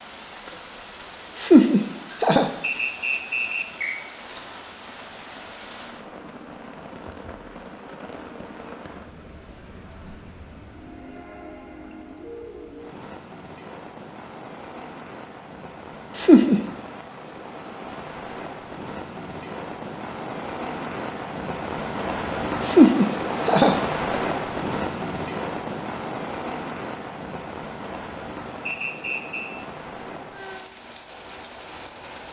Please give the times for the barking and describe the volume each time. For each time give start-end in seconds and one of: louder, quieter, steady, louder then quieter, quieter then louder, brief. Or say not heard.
not heard.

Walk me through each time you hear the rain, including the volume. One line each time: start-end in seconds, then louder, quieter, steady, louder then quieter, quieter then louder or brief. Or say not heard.
0.0-32.2 louder then quieter.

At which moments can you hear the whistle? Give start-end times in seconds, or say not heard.
2.6-4.0, 28.6-29.5.